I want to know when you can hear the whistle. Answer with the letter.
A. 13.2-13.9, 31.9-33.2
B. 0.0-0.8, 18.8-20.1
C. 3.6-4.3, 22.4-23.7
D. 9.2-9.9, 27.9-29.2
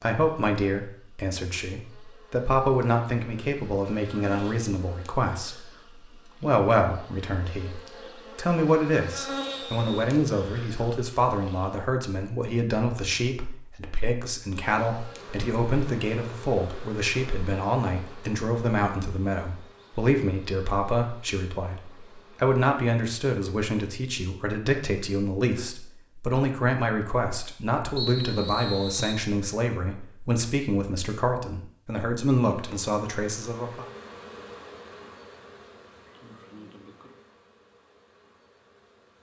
D.